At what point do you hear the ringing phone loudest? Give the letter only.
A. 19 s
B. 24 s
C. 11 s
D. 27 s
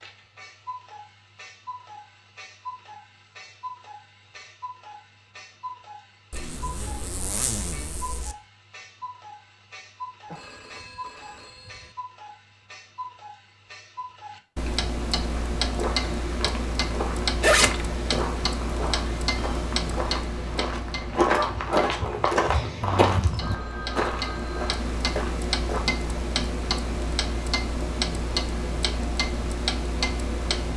B.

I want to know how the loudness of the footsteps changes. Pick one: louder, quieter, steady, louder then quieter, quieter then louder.
louder then quieter.